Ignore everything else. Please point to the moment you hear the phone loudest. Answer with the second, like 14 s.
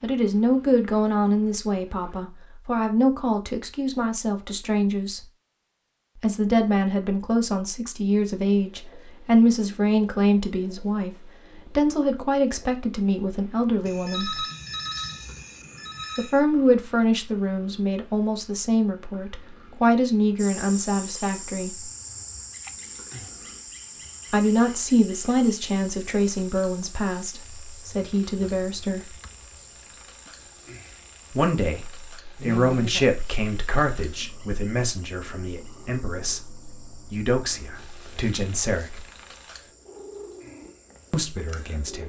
14 s.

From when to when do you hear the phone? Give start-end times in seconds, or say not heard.
13.8-16.4.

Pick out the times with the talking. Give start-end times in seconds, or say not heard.
0.0-5.2, 6.2-14.4, 16.1-21.9, 24.3-29.1, 31.3-39.0, 41.1-42.0.